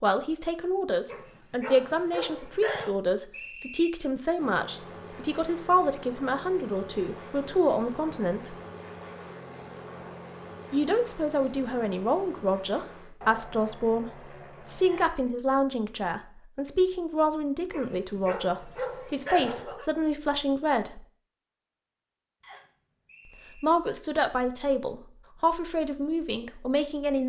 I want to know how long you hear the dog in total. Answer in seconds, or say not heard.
4 s.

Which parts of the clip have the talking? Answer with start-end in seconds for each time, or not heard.
0.0-8.6, 10.7-21.1, 23.6-27.2.